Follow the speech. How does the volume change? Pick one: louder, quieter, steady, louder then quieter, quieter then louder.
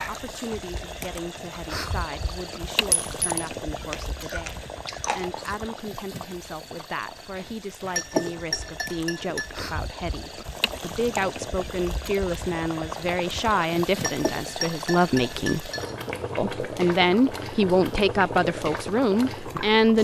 louder.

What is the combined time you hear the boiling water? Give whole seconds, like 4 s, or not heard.
20 s.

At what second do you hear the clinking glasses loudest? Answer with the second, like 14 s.
8 s.